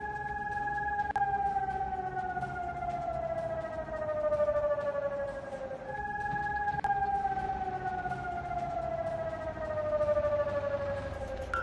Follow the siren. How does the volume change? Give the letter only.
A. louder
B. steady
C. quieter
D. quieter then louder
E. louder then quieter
B.